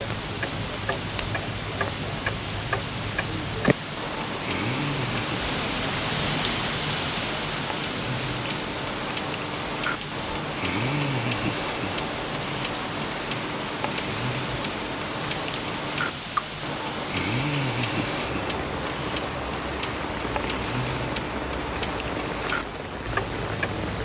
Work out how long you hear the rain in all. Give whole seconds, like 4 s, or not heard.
24 s.